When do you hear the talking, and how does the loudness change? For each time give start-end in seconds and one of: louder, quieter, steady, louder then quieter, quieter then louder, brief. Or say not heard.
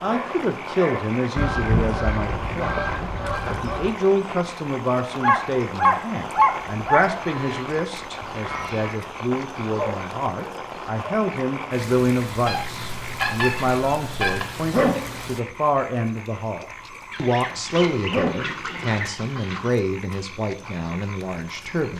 0.0-21.9 steady.